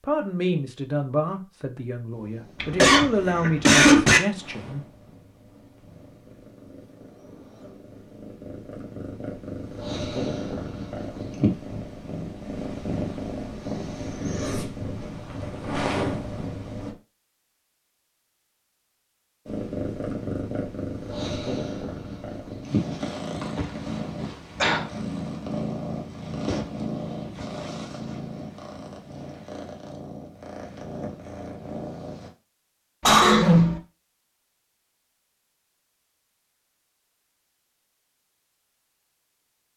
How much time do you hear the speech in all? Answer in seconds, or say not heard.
5 s.